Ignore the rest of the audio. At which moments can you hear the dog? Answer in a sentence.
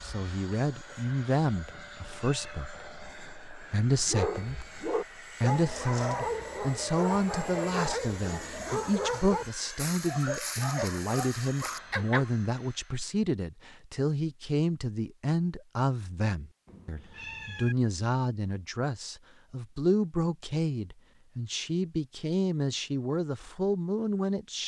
The dog can be heard from 4.0 to 12.2 s.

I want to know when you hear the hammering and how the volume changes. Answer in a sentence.
The hammering can't be heard in this clip.